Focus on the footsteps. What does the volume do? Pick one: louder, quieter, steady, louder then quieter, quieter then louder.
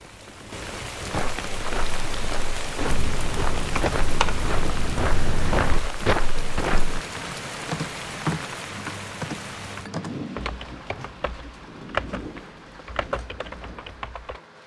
louder.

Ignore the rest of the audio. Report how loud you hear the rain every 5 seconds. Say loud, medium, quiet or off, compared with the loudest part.
loud, loud, medium.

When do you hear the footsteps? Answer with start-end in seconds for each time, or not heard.
1.1-7.0.